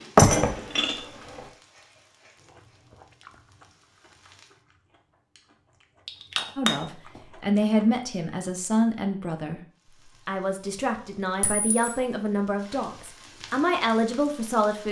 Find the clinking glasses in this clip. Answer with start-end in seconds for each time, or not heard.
0.1-0.9, 6.0-6.8, 11.4-11.9.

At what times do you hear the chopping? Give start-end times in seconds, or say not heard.
not heard.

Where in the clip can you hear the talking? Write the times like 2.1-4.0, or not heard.
6.5-9.6, 10.2-14.8.